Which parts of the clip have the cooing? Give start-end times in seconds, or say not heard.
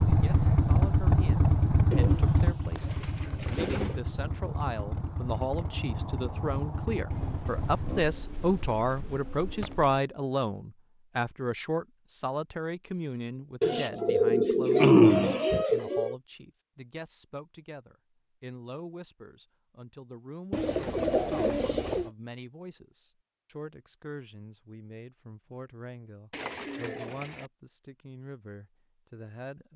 1.9-4.0, 7.1-10.0, 13.6-16.1, 20.5-22.1, 26.3-27.5.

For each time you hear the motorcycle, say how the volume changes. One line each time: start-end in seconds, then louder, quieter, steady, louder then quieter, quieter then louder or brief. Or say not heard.
0.0-8.1 quieter.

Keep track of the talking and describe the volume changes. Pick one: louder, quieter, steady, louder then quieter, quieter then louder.
louder then quieter.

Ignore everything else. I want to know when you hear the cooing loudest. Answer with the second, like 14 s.
15 s.